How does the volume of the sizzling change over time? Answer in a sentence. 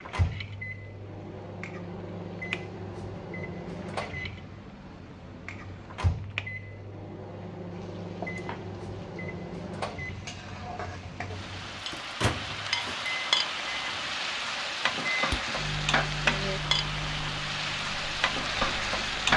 The loudness of the sizzling goes up.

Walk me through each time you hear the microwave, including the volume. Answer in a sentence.
The microwave can be heard from 0.0 to 19.3 s, at a steady volume.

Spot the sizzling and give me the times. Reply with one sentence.
You can hear the sizzling from 0.0 to 19.3 s.